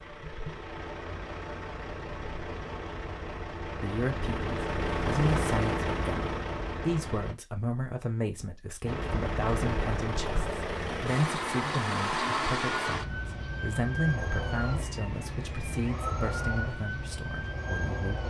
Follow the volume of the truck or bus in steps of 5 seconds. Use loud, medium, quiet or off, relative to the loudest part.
medium, loud, loud, medium.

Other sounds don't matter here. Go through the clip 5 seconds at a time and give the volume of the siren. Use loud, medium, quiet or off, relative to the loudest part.
off, off, loud, loud.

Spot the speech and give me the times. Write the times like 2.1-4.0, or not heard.
3.7-18.2.